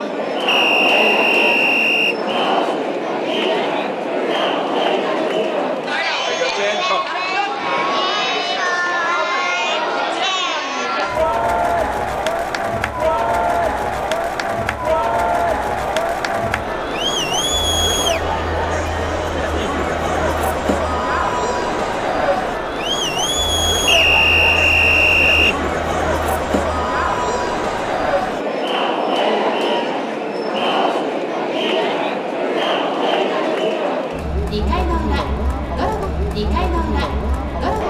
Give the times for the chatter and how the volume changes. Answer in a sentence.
You can hear the chatter from 0.0 to 37.8 s, at a steady volume.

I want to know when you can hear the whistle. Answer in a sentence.
The whistle can be heard from 0.5 to 2.1 s and from 23.9 to 25.6 s.